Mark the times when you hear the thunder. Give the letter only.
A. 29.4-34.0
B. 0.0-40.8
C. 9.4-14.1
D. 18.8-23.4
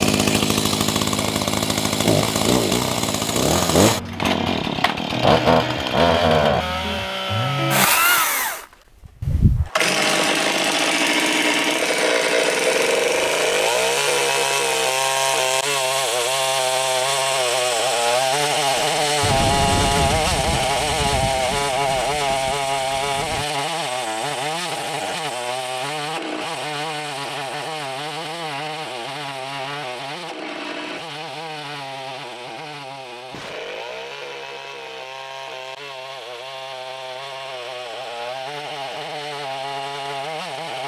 D.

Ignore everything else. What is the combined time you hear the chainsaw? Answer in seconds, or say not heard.
41 s.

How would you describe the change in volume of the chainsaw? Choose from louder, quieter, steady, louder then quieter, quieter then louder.
quieter.